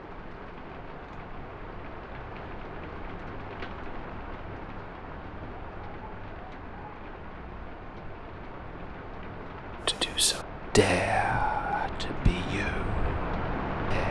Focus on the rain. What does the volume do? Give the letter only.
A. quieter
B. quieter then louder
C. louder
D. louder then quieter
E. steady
C.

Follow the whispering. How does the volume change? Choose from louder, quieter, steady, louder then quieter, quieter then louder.
quieter.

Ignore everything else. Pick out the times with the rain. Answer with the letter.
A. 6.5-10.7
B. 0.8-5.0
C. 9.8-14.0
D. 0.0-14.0
D.